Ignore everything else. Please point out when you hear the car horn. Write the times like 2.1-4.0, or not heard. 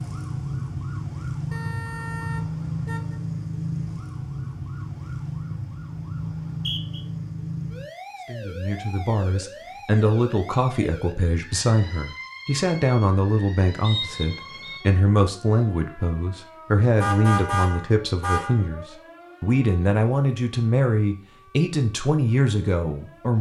1.5-3.2, 17.0-18.6.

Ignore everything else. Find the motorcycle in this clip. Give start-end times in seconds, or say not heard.
not heard.